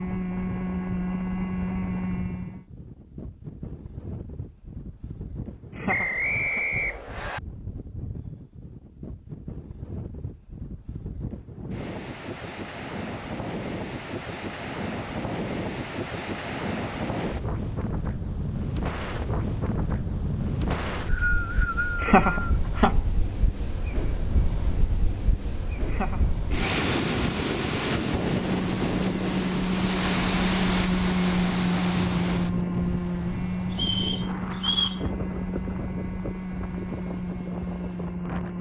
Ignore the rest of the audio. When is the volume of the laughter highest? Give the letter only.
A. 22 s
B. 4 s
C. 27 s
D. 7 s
A.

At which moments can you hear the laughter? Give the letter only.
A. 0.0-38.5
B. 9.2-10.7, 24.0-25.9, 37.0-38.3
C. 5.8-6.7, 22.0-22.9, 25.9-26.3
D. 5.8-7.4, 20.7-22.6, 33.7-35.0
C.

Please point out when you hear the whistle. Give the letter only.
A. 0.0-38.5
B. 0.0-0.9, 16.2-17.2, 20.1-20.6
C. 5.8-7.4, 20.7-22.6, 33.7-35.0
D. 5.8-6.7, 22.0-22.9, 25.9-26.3
C.